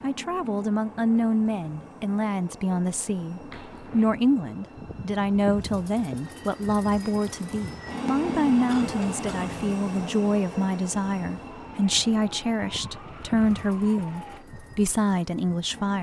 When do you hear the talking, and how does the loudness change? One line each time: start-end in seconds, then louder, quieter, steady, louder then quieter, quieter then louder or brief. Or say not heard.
0.0-15.9 steady.